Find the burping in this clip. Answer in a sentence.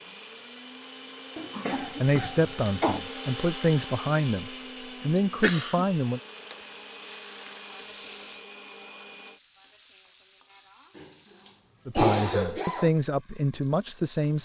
The burping can't be heard in this clip.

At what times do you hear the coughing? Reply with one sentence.
The coughing can be heard from 1.4 to 3.0 s, from 5.4 to 5.8 s and from 10.9 to 12.9 s.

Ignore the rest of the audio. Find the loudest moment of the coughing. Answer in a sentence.
The volume of the coughing peaks at 12 seconds.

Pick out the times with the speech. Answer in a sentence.
You can hear the speech from 1.8 to 6.2 s and from 11.8 to 14.4 s.